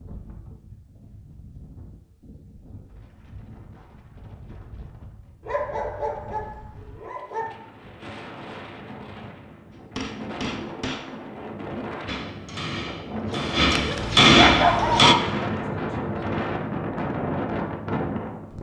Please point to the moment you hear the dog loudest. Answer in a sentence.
The volume of the dog peaks at 15 seconds.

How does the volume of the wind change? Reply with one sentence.
The loudness of the wind goes up.